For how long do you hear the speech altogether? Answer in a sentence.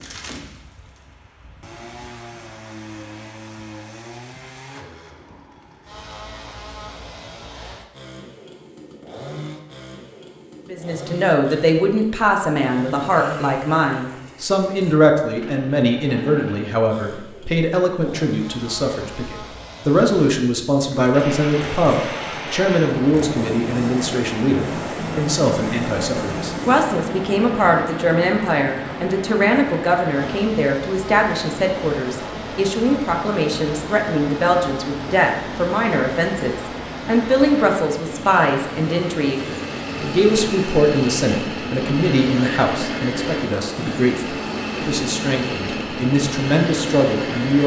You can hear the speech for 37 seconds altogether.